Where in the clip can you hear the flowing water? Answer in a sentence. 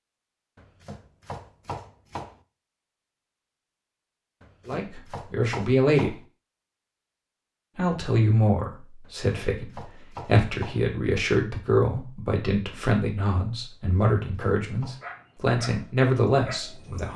The flowing water can't be heard in this clip.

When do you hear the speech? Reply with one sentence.
The speech can be heard from 4.7 to 6.2 s and from 7.8 to 17.1 s.